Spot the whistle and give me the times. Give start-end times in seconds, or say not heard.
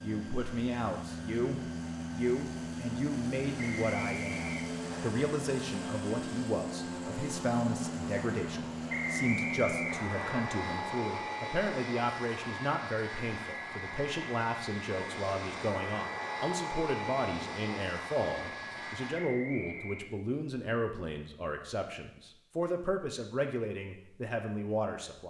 3.5-5.1, 8.8-10.4, 19.2-20.1.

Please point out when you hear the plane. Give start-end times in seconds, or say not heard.
0.0-19.2.